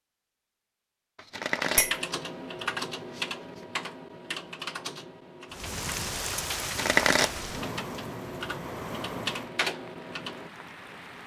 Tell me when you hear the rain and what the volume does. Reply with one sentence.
The rain can be heard from 5.5 to 11.2 s, getting quieter.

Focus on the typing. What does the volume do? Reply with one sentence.
The loudness of the typing goes down, then up.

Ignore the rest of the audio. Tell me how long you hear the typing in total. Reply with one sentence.
The typing can be heard for 9 seconds in total.